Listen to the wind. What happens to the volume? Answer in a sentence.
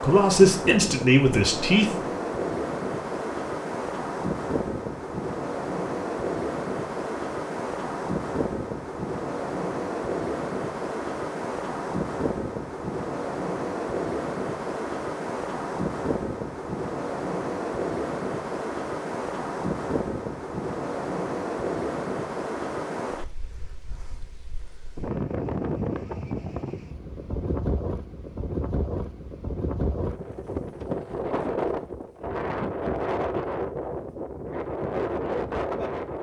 The loudness of the wind stays about the same.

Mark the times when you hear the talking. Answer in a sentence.
You can hear the talking from 0.0 to 1.9 s.